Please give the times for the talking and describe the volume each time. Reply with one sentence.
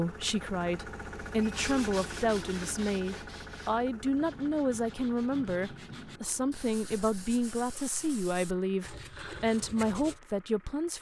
The talking can be heard from 0.0 to 10.9 s, at a steady volume.